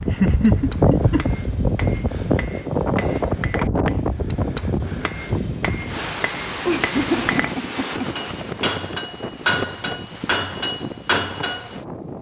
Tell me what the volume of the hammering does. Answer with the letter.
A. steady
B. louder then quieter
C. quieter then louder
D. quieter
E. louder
E.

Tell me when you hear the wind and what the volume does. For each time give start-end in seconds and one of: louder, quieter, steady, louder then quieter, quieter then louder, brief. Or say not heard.
0.0-12.1 quieter.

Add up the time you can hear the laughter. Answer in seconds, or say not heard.
3 s.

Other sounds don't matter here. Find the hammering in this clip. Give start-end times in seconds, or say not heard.
0.0-11.7.